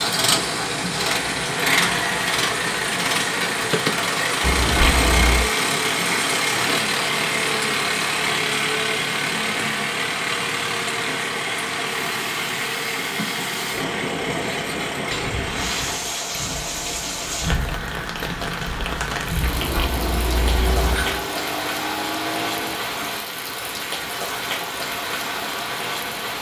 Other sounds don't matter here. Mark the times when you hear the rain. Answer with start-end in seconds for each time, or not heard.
0.0-26.3.